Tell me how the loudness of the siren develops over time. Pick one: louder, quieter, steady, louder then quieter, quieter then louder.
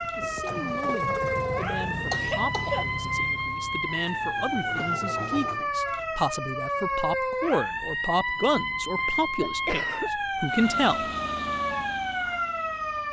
steady.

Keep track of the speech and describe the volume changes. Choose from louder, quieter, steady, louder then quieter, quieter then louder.
louder.